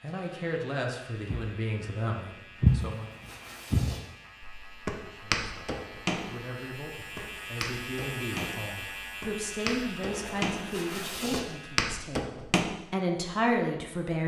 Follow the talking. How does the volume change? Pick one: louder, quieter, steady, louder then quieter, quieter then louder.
quieter then louder.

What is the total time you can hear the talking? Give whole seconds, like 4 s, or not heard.
12 s.